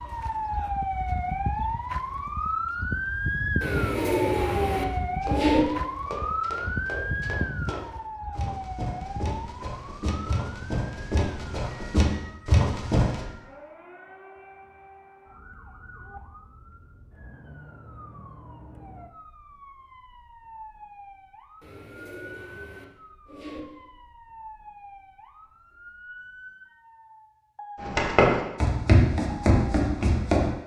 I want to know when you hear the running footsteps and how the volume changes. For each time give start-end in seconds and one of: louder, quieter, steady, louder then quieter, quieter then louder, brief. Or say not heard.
5.2-13.2 louder
27.8-30.6 brief.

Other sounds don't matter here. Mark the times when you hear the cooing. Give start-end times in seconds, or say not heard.
3.6-5.6, 21.6-23.6.